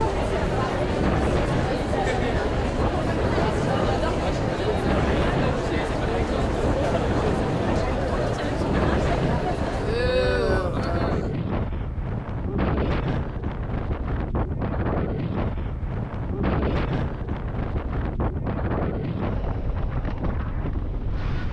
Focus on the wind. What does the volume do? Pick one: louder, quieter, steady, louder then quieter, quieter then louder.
steady.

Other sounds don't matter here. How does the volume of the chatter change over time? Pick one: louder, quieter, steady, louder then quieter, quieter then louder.
steady.